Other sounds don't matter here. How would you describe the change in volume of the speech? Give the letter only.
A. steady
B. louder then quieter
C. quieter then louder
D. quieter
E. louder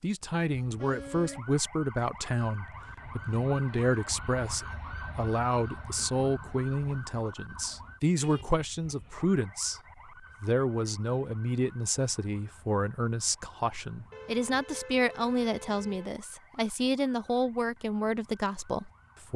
A.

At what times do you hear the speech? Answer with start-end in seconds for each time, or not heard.
0.0-9.8, 10.4-19.3.